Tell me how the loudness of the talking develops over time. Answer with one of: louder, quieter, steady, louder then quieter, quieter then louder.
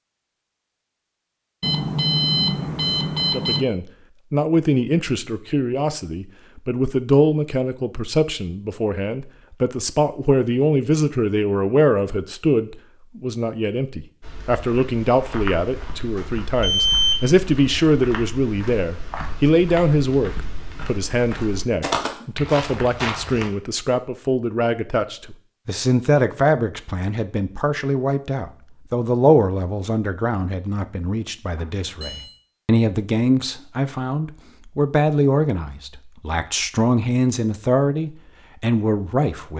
steady.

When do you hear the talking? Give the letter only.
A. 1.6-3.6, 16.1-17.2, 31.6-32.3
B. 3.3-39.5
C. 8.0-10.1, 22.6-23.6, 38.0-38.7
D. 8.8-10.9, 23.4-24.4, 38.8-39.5
B.